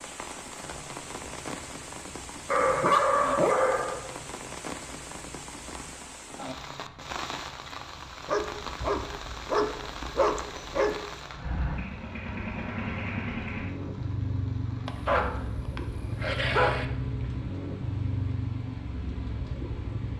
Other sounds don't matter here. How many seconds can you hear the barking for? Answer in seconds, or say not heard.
6 s.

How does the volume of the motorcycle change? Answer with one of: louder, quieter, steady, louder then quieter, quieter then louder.
louder.